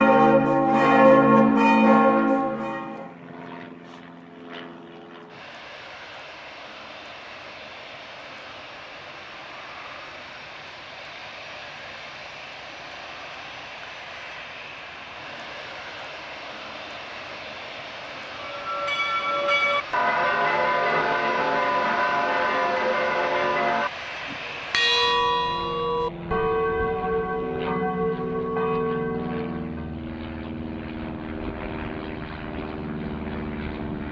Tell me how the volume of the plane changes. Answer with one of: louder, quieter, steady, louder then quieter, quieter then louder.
louder.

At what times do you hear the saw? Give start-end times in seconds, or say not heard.
not heard.